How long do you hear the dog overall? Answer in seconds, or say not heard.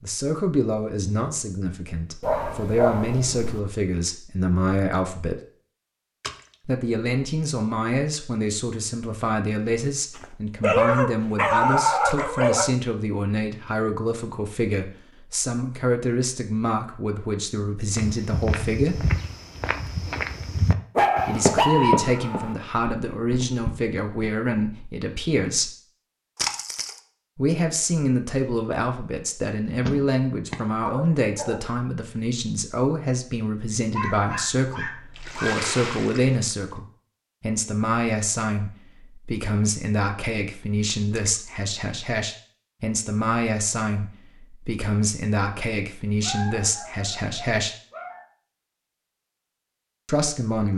11 s.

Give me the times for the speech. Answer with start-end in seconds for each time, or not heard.
0.0-5.4, 6.7-19.0, 21.2-25.8, 27.4-47.8, 50.0-50.7.